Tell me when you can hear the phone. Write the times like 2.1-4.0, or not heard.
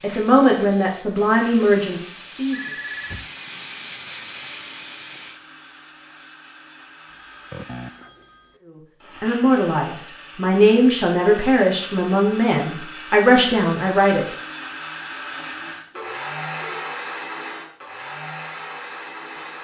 2.5-3.3, 7.0-8.6, 15.9-16.9.